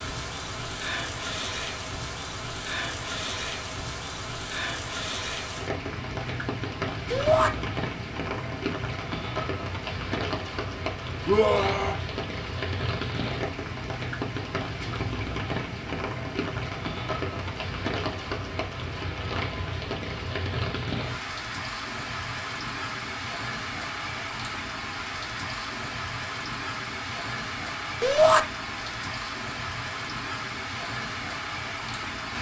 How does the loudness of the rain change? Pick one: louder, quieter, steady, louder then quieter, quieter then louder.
steady.